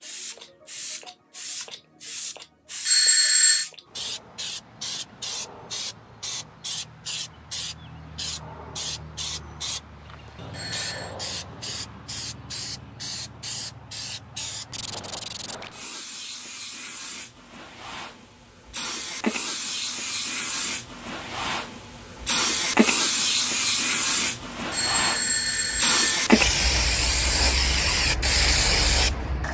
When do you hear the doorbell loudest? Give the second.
3 s.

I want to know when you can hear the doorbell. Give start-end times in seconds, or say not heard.
2.9-3.6, 10.5-11.2, 24.7-26.2.